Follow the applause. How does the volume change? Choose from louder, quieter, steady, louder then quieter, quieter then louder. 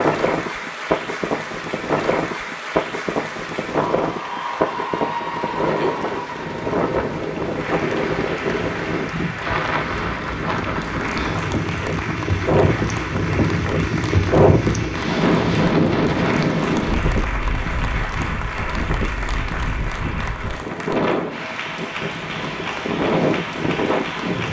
steady.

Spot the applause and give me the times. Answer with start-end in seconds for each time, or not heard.
0.0-24.4.